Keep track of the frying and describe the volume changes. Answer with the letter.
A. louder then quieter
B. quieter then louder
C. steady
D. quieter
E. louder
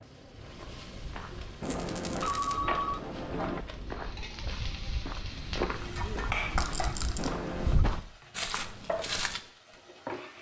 A.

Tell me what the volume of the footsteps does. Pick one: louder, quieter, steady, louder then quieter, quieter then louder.
louder.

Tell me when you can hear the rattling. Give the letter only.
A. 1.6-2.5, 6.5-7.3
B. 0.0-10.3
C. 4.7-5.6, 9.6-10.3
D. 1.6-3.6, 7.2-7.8
A.